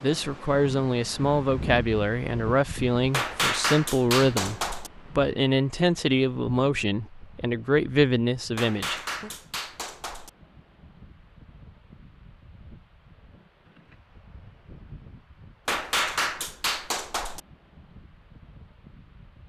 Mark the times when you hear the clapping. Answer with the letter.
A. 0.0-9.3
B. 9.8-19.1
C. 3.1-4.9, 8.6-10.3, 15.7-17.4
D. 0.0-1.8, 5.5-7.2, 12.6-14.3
C.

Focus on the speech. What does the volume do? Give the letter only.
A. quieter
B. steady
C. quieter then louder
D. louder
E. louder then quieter
B.